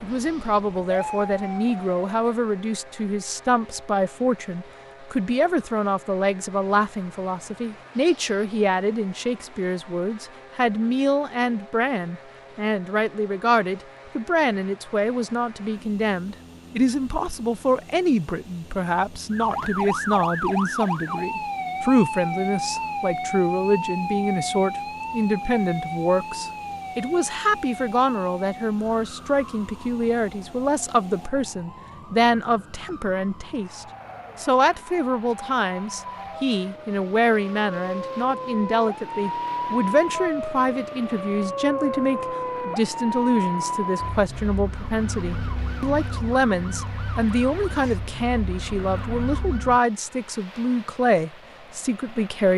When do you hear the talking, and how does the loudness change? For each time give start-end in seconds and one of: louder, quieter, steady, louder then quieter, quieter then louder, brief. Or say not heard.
0.0-52.5 steady.